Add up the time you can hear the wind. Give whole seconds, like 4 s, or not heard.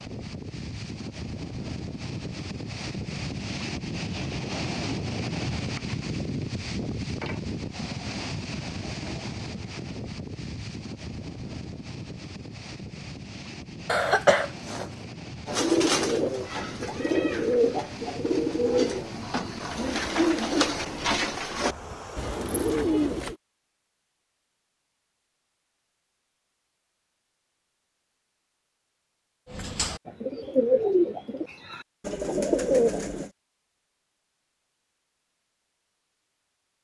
23 s.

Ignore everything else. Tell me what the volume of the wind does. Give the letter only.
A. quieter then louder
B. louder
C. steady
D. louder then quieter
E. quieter
E.